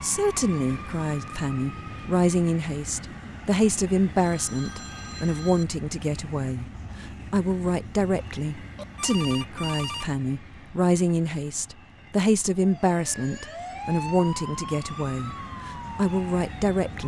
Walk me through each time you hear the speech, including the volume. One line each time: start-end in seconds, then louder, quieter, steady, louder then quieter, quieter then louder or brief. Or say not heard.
0.0-17.0 steady.